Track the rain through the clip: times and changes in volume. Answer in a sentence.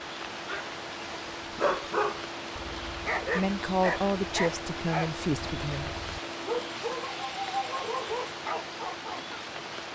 The rain can be heard from 0.0 to 9.9 s, at a steady volume.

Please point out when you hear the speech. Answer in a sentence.
The speech can be heard from 3.3 to 5.9 s.